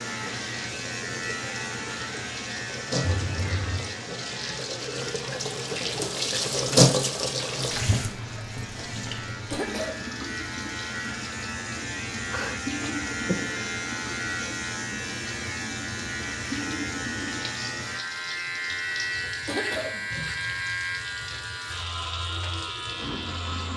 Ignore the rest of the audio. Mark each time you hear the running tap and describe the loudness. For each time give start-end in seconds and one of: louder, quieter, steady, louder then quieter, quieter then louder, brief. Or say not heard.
0.0-23.7 louder then quieter.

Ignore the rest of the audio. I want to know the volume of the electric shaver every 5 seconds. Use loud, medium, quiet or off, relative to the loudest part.
loud, medium, loud, loud, loud.